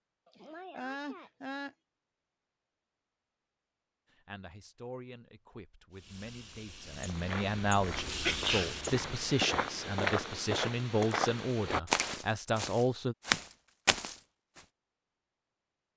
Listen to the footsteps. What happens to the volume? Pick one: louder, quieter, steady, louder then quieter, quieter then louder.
louder.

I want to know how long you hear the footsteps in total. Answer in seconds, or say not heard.
8 s.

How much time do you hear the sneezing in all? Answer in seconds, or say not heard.
2 s.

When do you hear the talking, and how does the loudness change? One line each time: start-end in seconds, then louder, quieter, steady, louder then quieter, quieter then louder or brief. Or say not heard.
4.1-13.2 louder.